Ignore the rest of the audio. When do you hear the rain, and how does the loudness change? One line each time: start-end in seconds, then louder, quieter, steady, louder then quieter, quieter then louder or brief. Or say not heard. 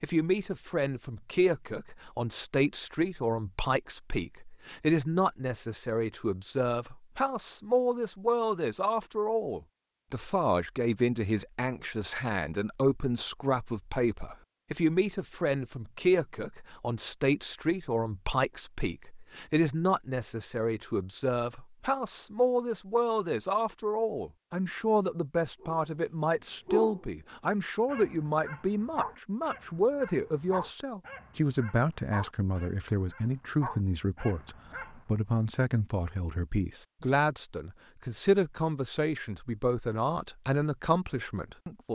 not heard.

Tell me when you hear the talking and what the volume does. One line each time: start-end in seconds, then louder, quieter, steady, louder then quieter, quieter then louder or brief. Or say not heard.
0.0-41.9 steady.